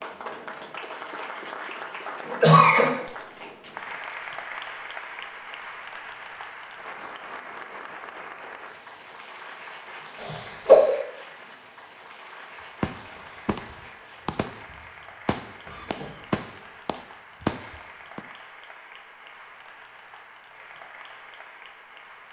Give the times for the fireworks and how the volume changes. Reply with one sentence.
The fireworks can be heard from 12.8 to 18.2 s, getting louder.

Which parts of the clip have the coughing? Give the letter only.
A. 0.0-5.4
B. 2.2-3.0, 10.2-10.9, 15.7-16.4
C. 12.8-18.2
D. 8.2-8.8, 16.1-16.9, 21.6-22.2
B.